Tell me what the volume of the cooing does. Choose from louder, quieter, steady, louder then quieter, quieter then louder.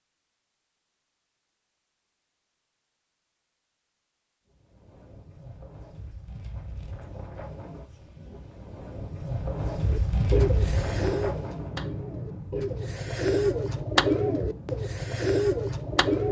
quieter then louder.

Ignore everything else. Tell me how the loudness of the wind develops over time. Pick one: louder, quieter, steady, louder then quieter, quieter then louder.
louder then quieter.